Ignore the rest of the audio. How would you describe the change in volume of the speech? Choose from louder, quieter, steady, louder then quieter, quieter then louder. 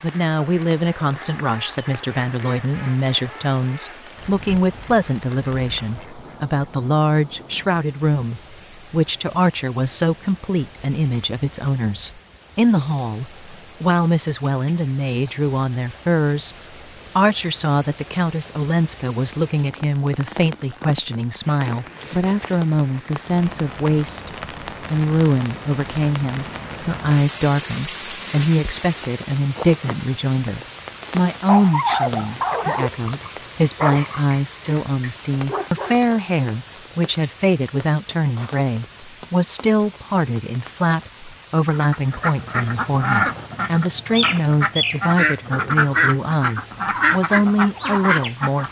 steady.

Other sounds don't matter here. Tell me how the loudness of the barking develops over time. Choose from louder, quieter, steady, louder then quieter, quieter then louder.
quieter then louder.